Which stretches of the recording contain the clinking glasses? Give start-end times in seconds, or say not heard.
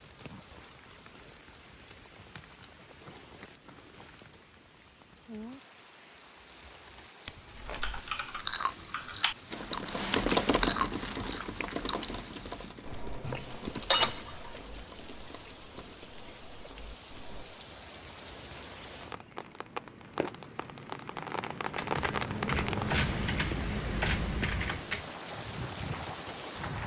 13.2-14.5.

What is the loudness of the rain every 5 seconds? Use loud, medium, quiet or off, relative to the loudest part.
quiet, quiet, quiet, medium, loud, loud.